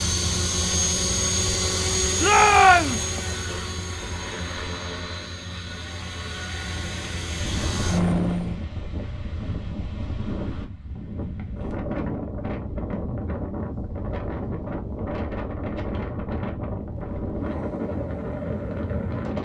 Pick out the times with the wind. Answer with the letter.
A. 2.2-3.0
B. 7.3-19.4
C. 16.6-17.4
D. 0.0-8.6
B.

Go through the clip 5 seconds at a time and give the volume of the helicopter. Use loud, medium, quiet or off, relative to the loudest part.
loud, loud, off, off.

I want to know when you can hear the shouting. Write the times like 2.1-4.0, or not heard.
2.2-3.0.